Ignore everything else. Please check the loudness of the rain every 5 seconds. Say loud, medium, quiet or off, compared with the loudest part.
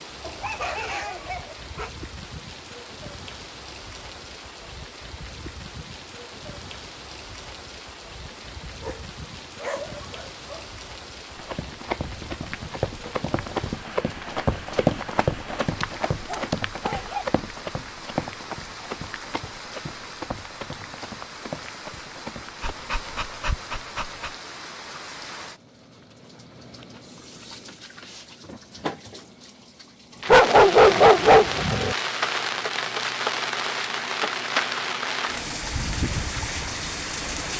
quiet, quiet, quiet, quiet, quiet, quiet, loud, loud.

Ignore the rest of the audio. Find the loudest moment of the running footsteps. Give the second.
15 s.